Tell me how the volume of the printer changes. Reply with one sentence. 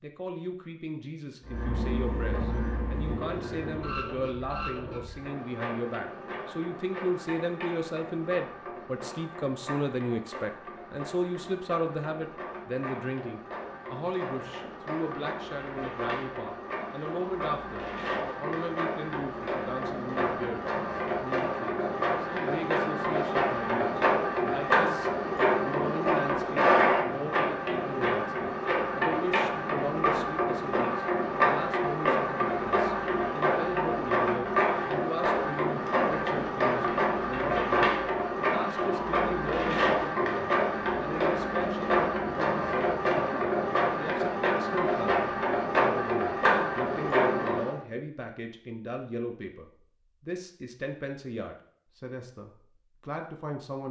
The loudness of the printer goes up.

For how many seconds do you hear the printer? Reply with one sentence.
You can hear the printer for 46 seconds altogether.